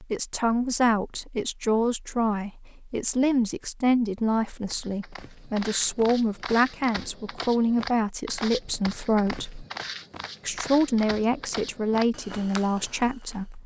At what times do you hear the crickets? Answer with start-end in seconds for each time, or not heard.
not heard.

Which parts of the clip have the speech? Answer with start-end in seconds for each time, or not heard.
0.0-9.7, 10.4-13.6.